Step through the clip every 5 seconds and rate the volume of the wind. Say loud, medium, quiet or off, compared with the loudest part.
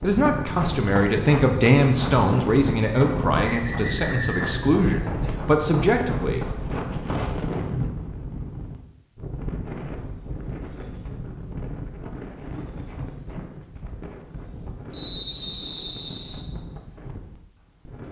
loud, loud, medium, medium.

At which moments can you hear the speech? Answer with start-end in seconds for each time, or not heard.
0.0-6.5.